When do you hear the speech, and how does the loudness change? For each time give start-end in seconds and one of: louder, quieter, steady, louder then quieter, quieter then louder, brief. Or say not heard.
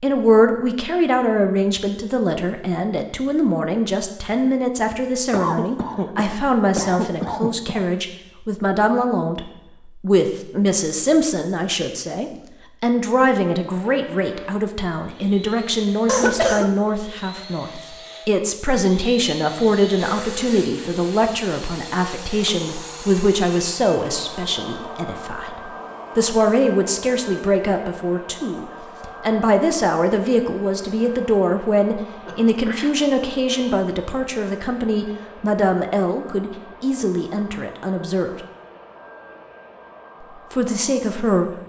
0.0-38.3 steady
40.4-41.5 brief.